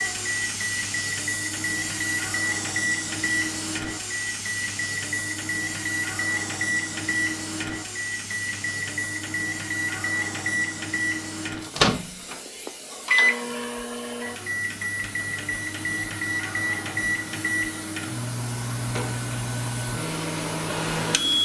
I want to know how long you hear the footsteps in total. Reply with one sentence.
You can't hear the footsteps here.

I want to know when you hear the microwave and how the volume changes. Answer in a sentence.
The microwave can be heard from 0.0 to 21.3 s, at a steady volume.